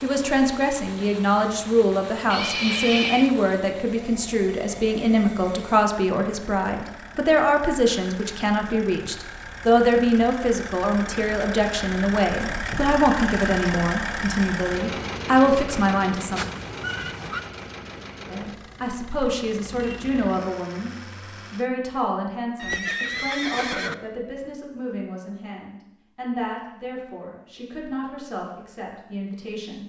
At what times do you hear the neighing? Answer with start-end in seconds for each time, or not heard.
2.3-3.4, 16.4-17.4, 22.6-23.9.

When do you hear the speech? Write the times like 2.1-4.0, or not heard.
0.0-16.4, 18.3-20.9, 21.5-29.8.